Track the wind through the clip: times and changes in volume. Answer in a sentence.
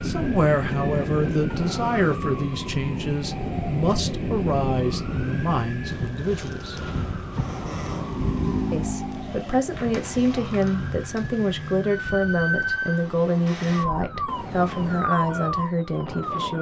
The wind can be heard from 0.0 to 16.5 s, getting quieter.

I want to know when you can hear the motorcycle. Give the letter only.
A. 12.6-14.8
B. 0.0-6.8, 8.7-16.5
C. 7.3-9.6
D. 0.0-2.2
C.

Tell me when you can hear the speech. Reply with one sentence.
The speech can be heard from 0.0 to 6.8 s and from 8.7 to 16.5 s.